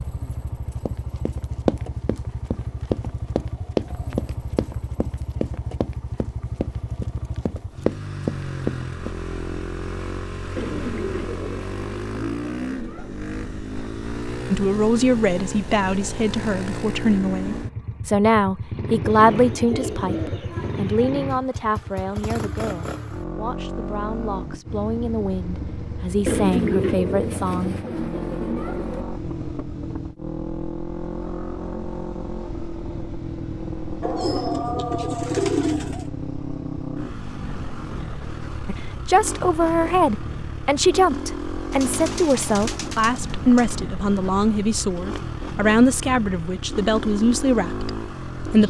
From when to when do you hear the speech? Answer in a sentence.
The speech can be heard from 14.5 to 27.8 s and from 38.6 to 48.6 s.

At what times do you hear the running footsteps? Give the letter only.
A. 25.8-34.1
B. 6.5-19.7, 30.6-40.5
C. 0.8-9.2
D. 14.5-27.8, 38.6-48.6
C.